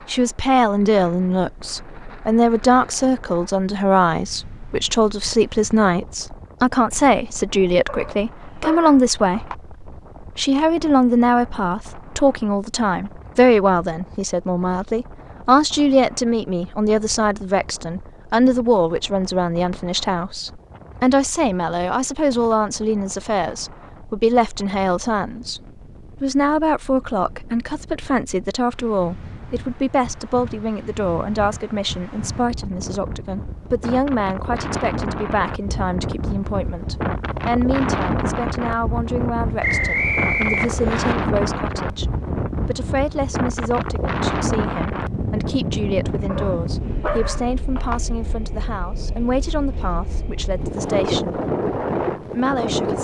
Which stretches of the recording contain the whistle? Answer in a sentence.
The whistle can be heard from 39.6 to 41.1 s.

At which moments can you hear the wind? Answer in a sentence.
You can hear the wind from 0.0 to 52.9 s.